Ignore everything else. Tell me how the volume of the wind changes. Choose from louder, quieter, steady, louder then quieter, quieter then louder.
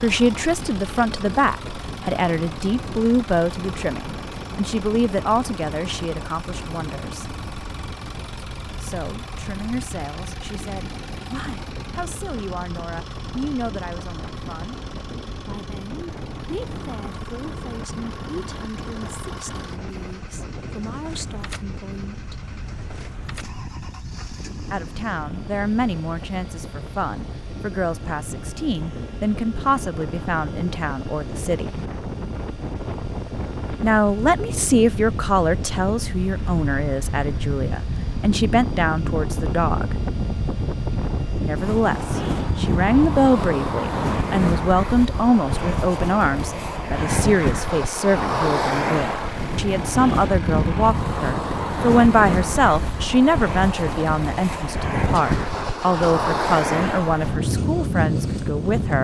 louder.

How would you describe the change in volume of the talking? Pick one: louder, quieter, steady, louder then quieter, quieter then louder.
quieter then louder.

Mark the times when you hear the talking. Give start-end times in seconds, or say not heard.
0.0-7.2, 8.8-14.8, 15.4-22.4, 24.7-31.8, 33.8-40.0, 41.4-58.9.